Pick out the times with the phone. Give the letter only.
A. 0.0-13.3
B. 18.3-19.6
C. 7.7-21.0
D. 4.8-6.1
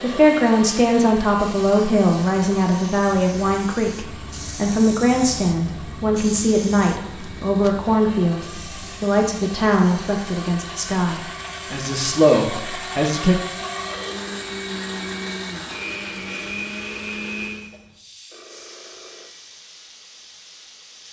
B.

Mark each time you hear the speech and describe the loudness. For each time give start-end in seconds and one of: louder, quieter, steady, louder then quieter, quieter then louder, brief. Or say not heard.
0.0-13.3 steady.